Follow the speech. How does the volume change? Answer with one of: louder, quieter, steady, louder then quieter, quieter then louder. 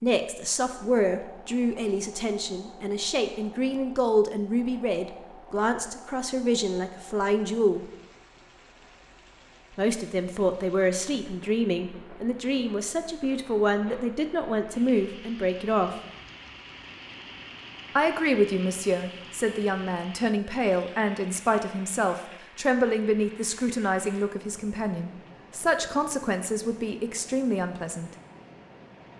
steady.